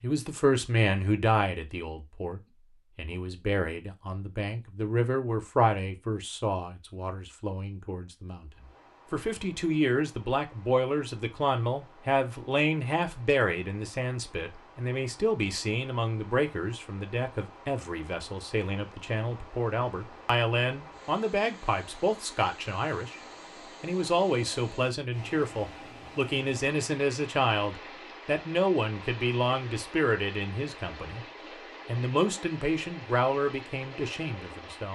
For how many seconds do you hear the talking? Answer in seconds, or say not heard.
34 s.